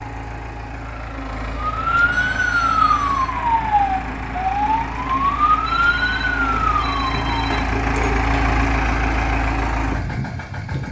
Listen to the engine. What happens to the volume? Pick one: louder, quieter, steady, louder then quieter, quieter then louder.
louder.